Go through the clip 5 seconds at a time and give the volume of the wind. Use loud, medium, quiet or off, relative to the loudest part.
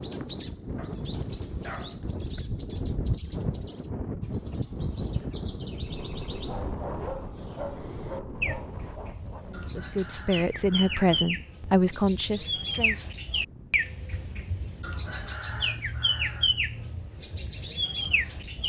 loud, loud, quiet, quiet.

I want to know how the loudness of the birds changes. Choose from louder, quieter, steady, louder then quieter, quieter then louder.
louder.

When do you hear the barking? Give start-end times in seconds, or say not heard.
0.8-2.4, 6.5-9.4, 15.5-17.1.